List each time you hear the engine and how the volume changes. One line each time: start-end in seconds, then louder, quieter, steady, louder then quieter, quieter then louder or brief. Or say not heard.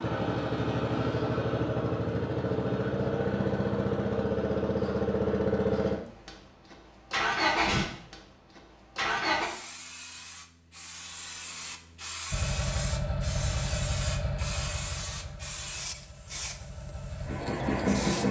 0.0-9.5 steady
12.3-18.2 quieter then louder.